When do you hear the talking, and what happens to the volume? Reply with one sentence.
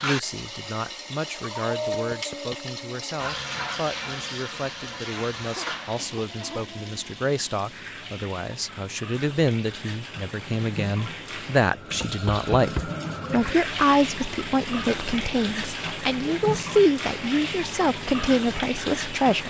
The talking can be heard from 0.0 to 19.4 s, getting louder.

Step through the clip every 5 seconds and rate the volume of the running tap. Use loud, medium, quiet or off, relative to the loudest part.
loud, medium, loud, loud.